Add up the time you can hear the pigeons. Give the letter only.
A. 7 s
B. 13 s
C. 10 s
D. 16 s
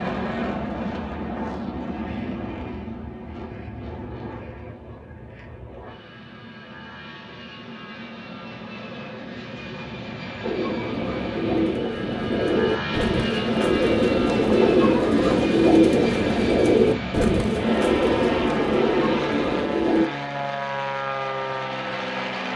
C.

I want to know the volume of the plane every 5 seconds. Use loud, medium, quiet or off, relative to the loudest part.
loud, medium, loud, loud, loud.